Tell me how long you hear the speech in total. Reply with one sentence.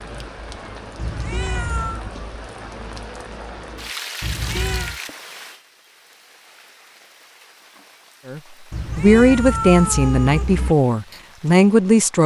The speech can be heard for 4 seconds in total.